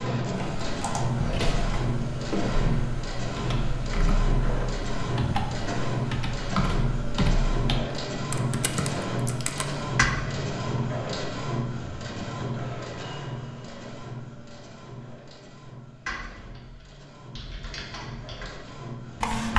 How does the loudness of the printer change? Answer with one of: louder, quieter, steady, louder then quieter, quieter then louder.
quieter.